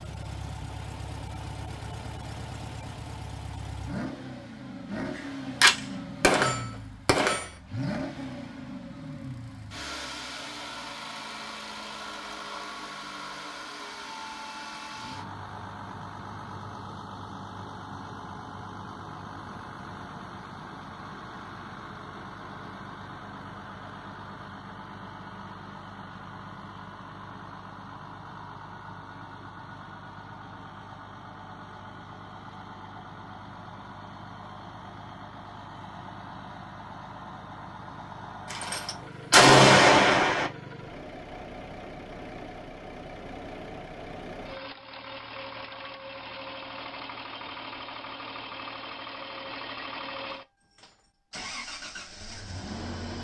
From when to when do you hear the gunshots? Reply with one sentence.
You can hear the gunshots from 5.2 to 7.5 s and from 38.5 to 40.5 s.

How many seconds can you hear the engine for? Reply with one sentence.
You can hear the engine for 53 seconds altogether.